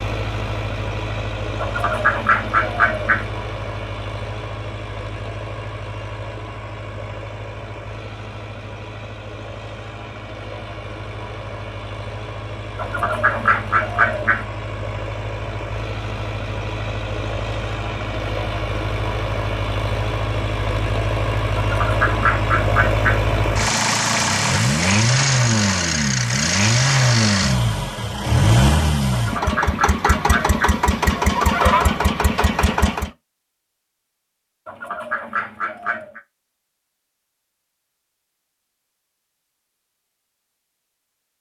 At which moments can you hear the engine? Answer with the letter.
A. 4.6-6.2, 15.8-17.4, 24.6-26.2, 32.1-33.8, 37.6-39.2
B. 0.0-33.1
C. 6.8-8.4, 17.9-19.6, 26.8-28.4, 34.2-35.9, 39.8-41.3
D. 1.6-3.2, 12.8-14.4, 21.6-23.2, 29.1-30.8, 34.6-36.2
B.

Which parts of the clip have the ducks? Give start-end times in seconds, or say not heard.
1.6-3.2, 12.8-14.4, 21.6-23.2, 29.1-30.8, 34.6-36.2.